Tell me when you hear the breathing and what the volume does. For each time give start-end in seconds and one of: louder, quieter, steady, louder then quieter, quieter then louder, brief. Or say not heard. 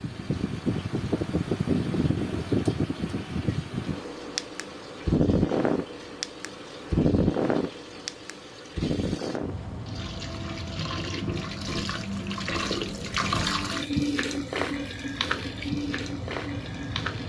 not heard.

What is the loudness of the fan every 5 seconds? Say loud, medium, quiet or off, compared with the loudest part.
loud, loud, quiet, medium.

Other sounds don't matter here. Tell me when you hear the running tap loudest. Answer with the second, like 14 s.
14 s.